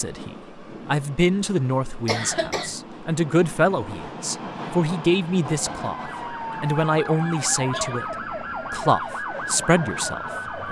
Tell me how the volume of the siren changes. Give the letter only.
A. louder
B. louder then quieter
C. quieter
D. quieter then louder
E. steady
E.